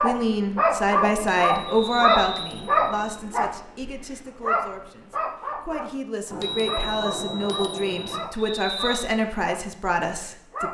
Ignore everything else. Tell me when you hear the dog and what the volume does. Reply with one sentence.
The dog can be heard from 0.0 to 10.6 s, getting quieter.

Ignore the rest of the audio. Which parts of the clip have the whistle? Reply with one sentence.
You can hear the whistle from 1.6 to 2.5 s and from 8.4 to 9.1 s.